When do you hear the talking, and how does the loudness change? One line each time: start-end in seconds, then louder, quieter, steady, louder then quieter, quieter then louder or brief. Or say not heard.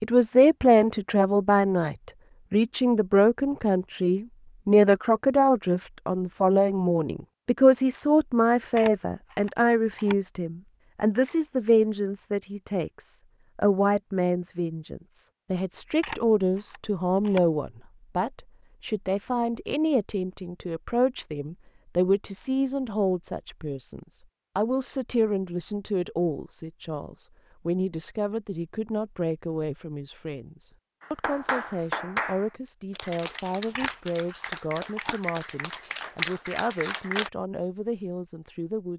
0.0-38.9 quieter.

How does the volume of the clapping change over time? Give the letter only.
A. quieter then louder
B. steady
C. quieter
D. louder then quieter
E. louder
A.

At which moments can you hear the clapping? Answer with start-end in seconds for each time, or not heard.
31.0-37.3.